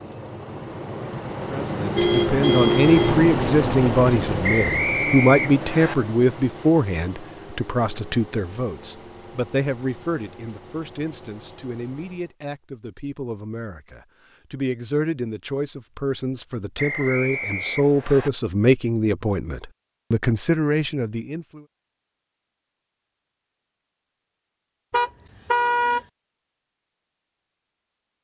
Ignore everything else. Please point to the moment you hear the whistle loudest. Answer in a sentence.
The loudest moment of the whistle is at 5 seconds.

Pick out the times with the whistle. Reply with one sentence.
The whistle can be heard from 4.4 to 6.0 s and from 16.8 to 18.3 s.